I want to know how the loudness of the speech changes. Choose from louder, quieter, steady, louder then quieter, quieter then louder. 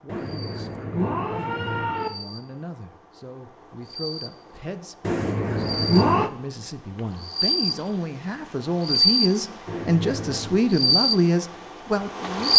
louder.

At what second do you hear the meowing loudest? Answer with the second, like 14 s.
6 s.